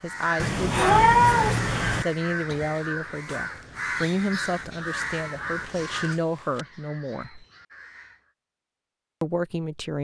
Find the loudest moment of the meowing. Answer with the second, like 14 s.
1 s.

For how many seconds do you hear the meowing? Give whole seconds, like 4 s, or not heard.
3 s.